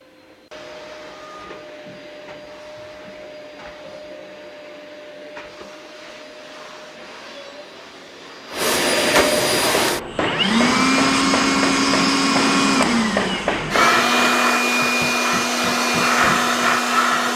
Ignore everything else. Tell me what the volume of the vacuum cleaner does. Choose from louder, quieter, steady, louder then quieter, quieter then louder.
louder.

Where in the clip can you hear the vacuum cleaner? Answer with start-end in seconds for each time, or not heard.
0.0-17.3.